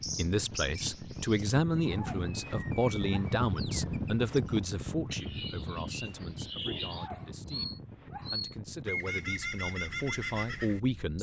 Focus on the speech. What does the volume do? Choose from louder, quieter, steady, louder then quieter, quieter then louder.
quieter then louder.